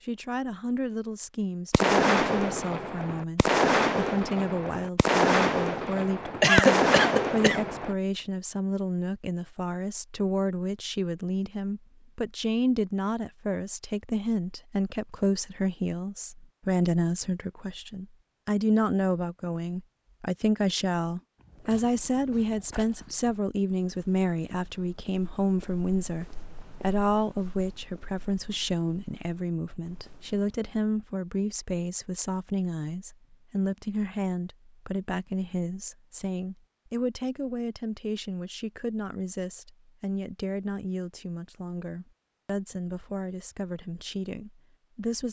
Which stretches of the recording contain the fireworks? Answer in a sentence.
You can hear the fireworks from 1.7 to 8.0 s.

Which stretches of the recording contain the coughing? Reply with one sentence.
The coughing can be heard from 6.4 to 7.6 s.